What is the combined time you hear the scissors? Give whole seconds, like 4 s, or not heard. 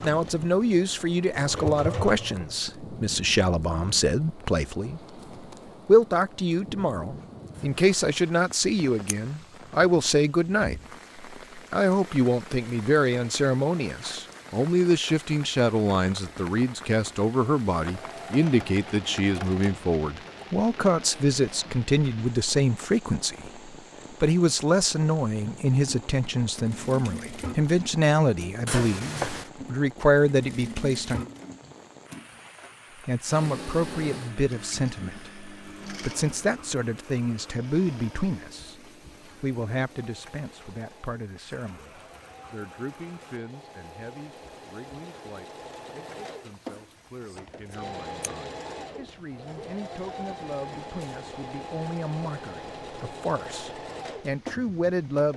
2 s.